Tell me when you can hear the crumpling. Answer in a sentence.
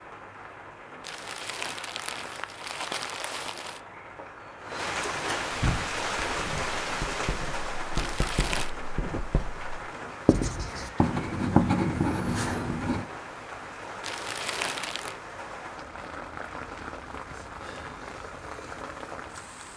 The crumpling can be heard from 1.0 to 3.8 s, from 8.0 to 8.7 s and from 14.0 to 15.2 s.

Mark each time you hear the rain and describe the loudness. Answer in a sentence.
You can hear the rain from 0.0 to 19.7 s, getting louder then quieter.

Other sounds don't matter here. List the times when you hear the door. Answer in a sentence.
You can hear the door from 5.0 to 5.9 s.